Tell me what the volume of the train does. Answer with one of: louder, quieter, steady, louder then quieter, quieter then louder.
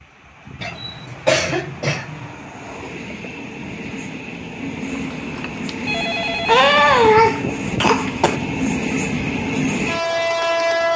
louder.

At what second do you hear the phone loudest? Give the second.
6 s.